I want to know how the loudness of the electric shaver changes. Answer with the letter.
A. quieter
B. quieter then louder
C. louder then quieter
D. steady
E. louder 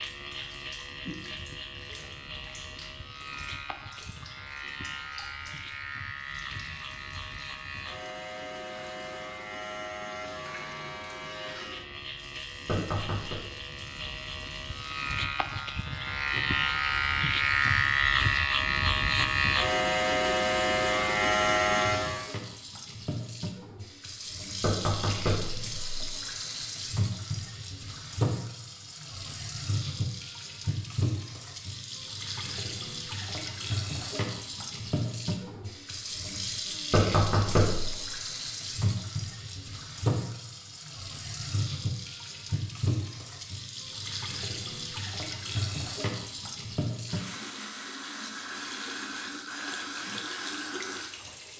E.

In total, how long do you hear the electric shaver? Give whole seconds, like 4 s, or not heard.
22 s.